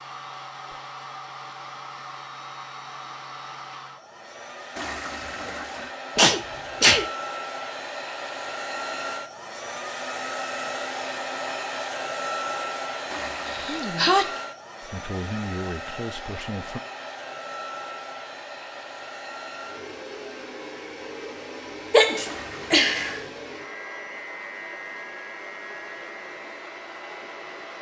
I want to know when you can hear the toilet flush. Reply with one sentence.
You can hear the toilet flush from 4.8 to 6.0 s, from 13.1 to 13.8 s and from 22.2 to 23.2 s.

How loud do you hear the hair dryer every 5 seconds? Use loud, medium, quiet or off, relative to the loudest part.
medium, loud, loud, medium, medium, medium.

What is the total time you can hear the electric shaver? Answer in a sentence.
The electric shaver can't be heard in this clip.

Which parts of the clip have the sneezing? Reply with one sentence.
The sneezing can be heard from 6.2 to 7.0 s, from 13.4 to 14.4 s and from 21.9 to 23.2 s.